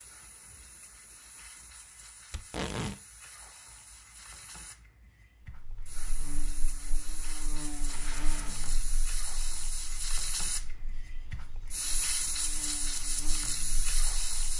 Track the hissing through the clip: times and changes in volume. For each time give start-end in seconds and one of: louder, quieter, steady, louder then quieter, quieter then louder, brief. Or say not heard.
0.0-14.5 louder.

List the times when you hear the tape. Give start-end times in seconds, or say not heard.
2.3-3.0, 7.8-9.1.